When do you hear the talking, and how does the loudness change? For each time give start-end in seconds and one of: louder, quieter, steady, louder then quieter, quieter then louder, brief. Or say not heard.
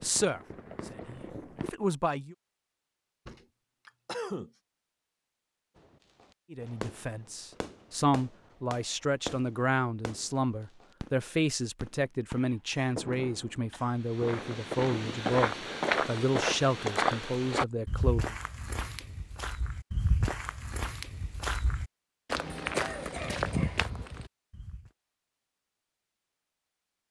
0.0-2.4 brief
6.5-18.4 steady.